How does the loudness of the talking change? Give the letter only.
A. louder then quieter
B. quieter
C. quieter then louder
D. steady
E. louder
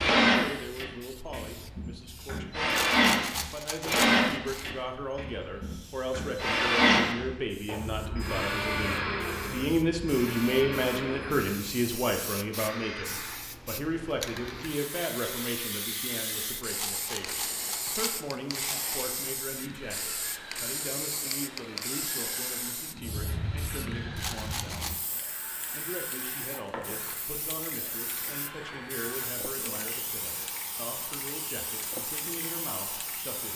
A.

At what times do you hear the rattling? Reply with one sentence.
You can hear the rattling from 2.7 to 4.7 s, from 16.7 to 18.9 s and from 24.1 to 25.1 s.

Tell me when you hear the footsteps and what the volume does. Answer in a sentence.
You can't hear the footsteps here.